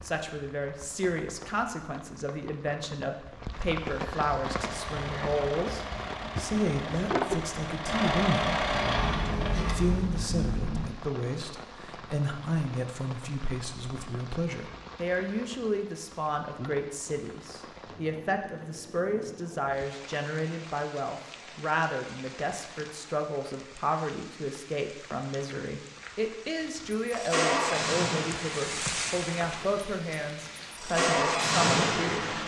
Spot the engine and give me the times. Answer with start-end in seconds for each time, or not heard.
4.4-10.8, 26.9-32.4.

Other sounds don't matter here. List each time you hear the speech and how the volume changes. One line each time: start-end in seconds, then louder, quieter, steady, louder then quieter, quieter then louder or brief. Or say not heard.
0.0-32.4 steady.